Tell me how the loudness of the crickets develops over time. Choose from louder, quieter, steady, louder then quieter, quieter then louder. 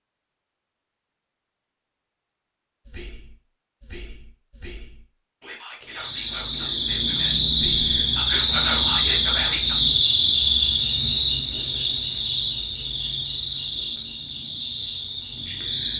quieter.